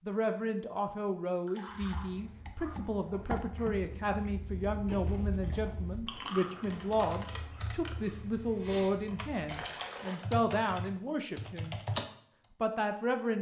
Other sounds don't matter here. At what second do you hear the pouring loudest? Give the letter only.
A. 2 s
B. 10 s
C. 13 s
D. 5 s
B.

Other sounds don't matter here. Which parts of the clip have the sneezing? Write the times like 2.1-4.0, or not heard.
not heard.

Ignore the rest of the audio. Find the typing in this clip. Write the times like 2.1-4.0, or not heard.
1.7-12.1.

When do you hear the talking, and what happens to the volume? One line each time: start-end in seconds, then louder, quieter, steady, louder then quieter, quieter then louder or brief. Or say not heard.
0.1-11.8 steady
12.6-13.3 brief.